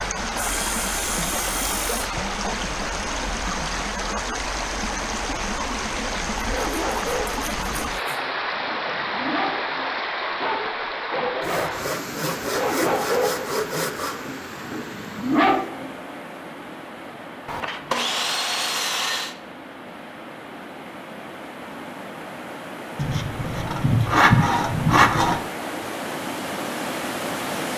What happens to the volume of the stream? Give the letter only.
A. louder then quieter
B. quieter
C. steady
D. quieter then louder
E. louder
D.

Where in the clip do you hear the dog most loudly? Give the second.
15 s.